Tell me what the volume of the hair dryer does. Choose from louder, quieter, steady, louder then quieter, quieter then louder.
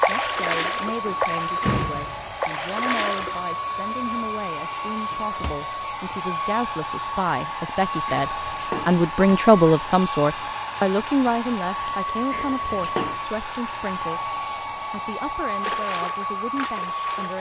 steady.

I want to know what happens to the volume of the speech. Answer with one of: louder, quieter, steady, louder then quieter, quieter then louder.
louder then quieter.